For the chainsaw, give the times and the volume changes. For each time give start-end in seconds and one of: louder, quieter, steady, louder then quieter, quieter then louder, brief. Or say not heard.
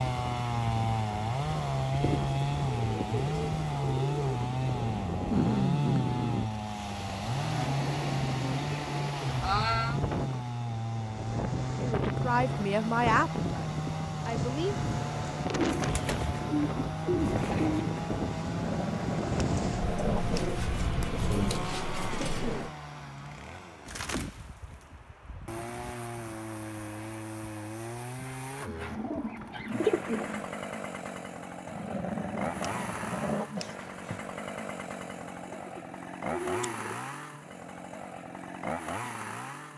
0.0-39.7 quieter.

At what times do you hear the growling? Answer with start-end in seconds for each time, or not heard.
5.2-6.5, 18.4-20.5, 31.6-34.2.